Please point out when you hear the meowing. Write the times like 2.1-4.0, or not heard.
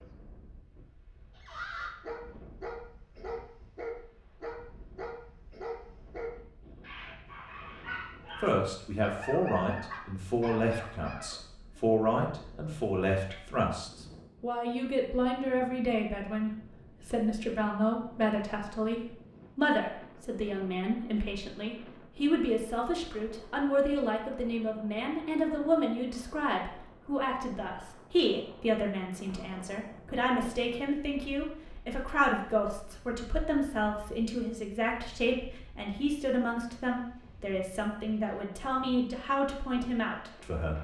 not heard.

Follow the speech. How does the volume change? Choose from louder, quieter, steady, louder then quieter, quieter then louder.
steady.